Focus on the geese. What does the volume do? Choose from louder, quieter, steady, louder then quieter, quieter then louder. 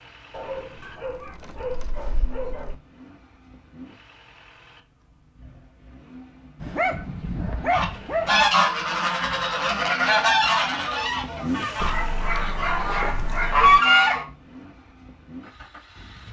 quieter then louder.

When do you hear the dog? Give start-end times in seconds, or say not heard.
0.3-2.8, 6.6-8.5, 11.8-13.8.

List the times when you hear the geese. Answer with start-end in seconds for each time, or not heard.
7.7-14.2.